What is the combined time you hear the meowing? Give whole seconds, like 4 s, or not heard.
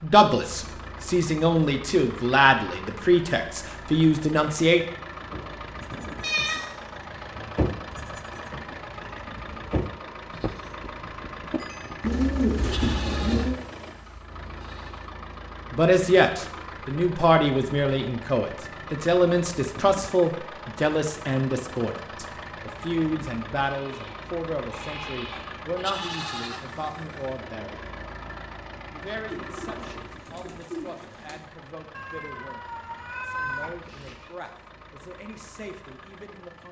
3 s.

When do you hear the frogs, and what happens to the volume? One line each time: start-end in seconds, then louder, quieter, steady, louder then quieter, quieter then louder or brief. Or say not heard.
not heard.